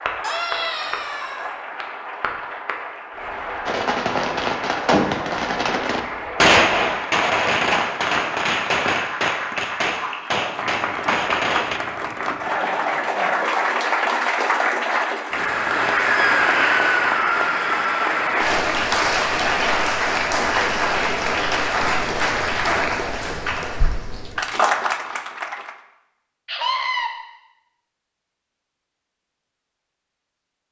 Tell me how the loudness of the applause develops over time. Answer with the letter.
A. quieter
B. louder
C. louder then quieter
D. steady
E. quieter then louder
B.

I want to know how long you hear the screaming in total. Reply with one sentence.
The screaming can be heard for 4 seconds in total.